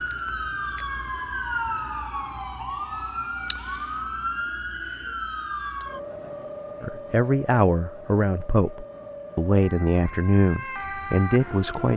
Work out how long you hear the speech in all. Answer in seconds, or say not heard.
5 s.